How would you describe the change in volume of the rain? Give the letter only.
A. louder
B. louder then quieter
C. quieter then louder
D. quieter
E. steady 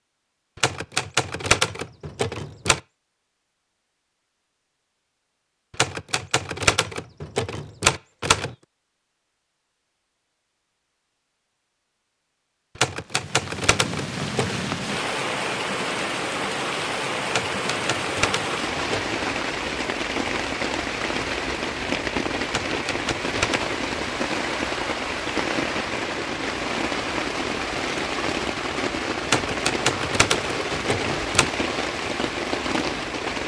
E.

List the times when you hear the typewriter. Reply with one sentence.
The typewriter can be heard from 0.6 to 2.8 s, from 5.8 to 8.6 s, from 12.8 to 14.7 s, from 17.3 to 19.1 s, from 22.5 to 23.8 s and from 29.2 to 31.5 s.